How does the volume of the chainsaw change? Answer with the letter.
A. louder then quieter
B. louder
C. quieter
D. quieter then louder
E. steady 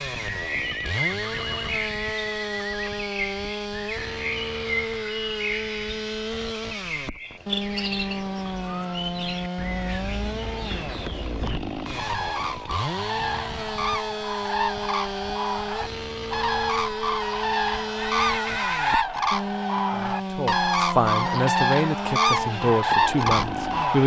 E.